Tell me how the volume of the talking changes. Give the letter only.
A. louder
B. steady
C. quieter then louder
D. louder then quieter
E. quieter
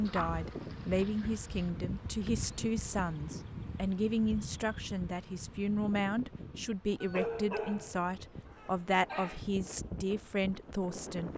B.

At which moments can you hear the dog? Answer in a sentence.
You can hear the dog from 0.1 to 1.7 s and from 7.0 to 9.4 s.